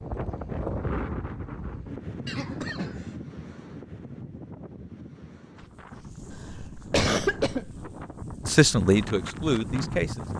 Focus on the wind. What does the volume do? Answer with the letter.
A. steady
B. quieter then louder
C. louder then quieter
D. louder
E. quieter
B.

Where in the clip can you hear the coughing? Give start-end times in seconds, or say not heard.
2.2-3.1, 6.3-7.9.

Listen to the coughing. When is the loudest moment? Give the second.
7 s.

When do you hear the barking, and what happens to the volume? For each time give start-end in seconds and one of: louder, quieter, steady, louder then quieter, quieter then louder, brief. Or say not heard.
not heard.